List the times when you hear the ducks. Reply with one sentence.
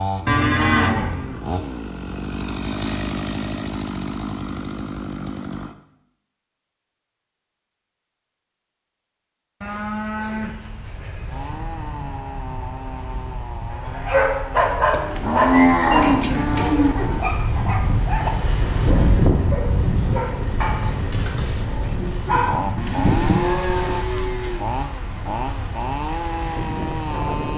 You can't hear the ducks here.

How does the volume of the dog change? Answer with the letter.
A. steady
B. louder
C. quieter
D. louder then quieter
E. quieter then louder
C.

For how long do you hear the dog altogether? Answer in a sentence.
You can hear the dog for 9 seconds altogether.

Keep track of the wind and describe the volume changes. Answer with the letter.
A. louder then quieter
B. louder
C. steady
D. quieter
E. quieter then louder
A.